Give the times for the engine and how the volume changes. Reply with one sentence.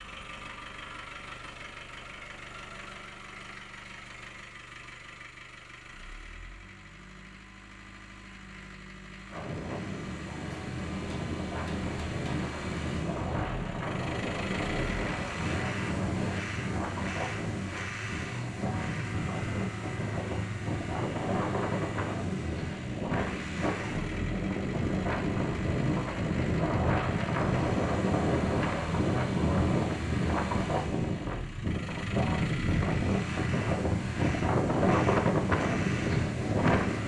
The engine can be heard from 0.0 to 37.0 s, getting louder.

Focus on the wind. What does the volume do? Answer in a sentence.
The volume of the wind goes up.